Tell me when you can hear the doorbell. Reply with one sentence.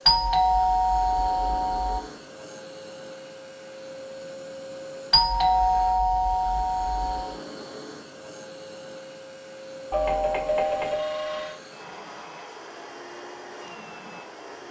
You can hear the doorbell from 0.1 to 2.0 s, from 5.1 to 7.3 s and from 9.9 to 11.6 s.